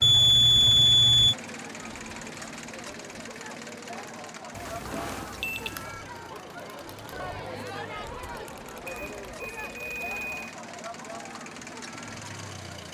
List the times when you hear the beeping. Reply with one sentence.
The beeping can be heard from 0.0 to 1.4 s, from 4.5 to 5.8 s and from 8.8 to 10.5 s.